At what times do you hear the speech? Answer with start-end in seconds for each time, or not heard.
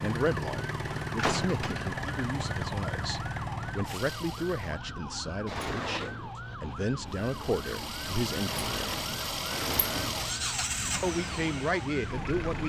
0.0-8.9, 11.0-12.6.